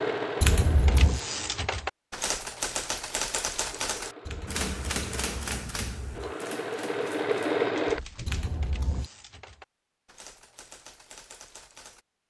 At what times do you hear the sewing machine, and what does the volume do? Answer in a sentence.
You can hear the sewing machine briefly from 0.0 to 1.8 s; and from 3.6 to 8.4 s, getting louder.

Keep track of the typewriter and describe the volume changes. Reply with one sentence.
The volume of the typewriter goes down.